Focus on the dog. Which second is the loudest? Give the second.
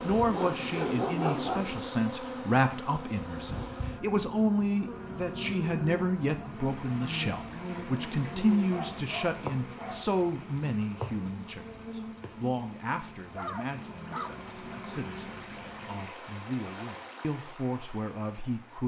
1 s.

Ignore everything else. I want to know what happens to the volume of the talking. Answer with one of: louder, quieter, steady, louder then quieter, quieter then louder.
quieter.